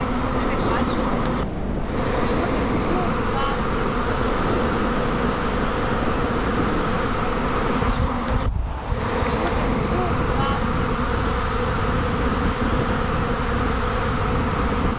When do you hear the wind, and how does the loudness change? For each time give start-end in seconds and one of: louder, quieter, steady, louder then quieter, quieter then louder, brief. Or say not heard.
0.0-14.9 steady.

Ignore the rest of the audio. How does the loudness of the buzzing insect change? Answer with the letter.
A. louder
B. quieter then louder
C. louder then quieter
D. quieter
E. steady
E.